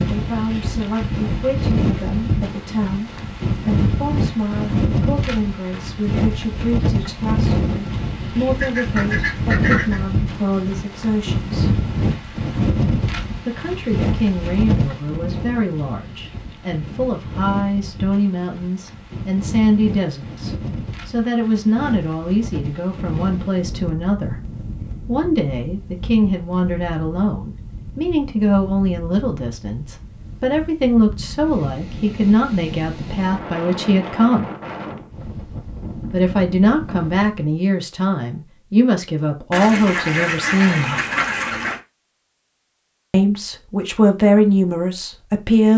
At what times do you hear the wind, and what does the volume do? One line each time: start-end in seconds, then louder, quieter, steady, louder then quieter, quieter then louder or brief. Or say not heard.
0.0-37.5 quieter.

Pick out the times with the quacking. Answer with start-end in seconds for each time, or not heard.
8.6-10.0, 39.5-41.8.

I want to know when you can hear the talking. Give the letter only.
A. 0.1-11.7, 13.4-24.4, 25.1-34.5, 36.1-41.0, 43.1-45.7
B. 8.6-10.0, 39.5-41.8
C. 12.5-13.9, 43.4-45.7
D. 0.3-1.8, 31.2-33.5
A.